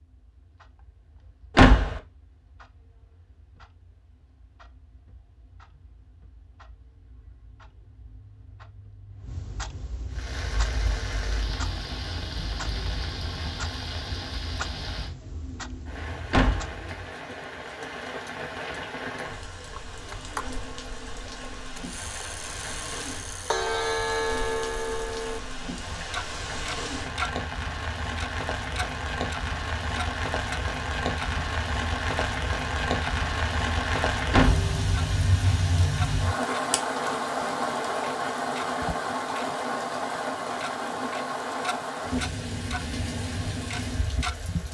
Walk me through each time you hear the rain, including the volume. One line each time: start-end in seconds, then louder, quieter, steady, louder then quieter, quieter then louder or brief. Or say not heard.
10.1-44.7 louder.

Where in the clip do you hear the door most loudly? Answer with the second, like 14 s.
2 s.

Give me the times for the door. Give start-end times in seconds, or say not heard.
1.6-2.0, 16.3-16.8, 34.3-34.8.